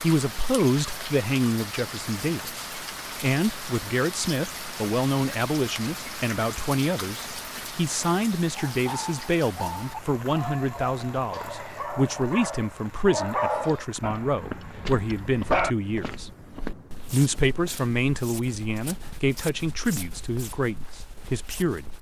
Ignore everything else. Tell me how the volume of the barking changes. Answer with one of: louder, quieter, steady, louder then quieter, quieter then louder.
louder then quieter.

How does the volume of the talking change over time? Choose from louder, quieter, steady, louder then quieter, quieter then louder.
steady.